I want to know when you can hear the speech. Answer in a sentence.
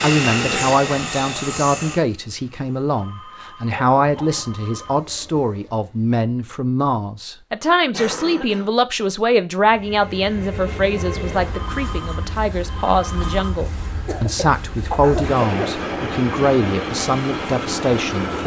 The speech can be heard from 0.0 to 18.4 s.